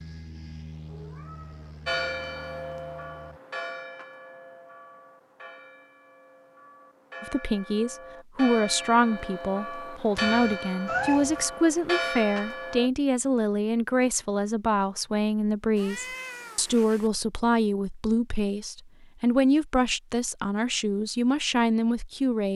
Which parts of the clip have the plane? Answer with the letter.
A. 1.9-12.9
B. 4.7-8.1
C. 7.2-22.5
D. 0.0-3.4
D.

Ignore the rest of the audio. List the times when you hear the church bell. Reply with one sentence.
The church bell can be heard from 1.9 to 12.9 s.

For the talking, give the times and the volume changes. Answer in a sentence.
You can hear the talking from 7.2 to 22.5 s, at a steady volume.